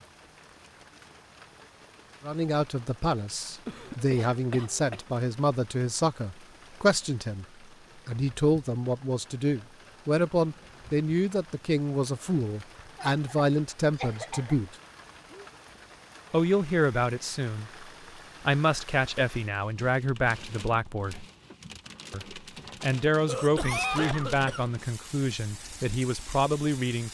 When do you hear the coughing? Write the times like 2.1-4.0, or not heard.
3.6-5.0, 12.9-14.6, 23.2-24.7.